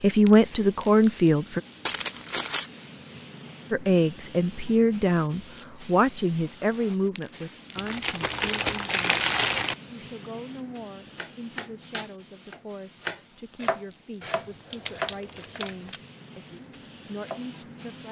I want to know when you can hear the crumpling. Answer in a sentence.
You can hear the crumpling from 1.9 to 2.7 s, from 7.8 to 9.8 s and from 14.2 to 16.0 s.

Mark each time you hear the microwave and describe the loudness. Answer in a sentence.
You can't hear the microwave here.